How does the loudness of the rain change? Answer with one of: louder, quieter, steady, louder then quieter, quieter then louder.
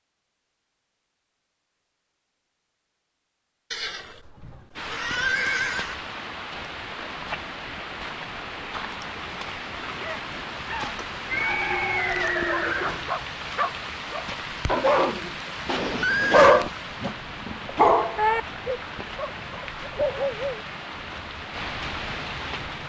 steady.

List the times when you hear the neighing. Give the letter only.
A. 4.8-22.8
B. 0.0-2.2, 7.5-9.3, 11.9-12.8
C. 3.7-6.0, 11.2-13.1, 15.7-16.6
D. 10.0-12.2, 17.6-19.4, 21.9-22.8
C.